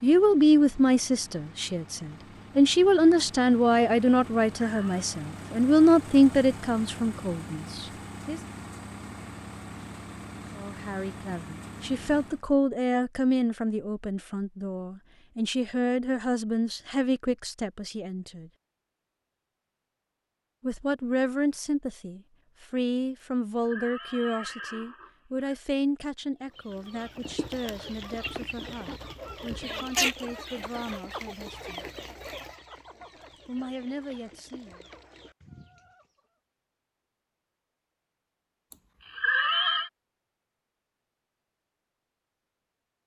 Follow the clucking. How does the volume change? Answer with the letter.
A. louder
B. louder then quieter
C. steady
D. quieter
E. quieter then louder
B.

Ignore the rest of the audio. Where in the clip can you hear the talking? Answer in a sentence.
You can hear the talking from 0.0 to 8.4 s, from 10.6 to 18.5 s, from 20.6 to 31.9 s and from 33.5 to 34.8 s.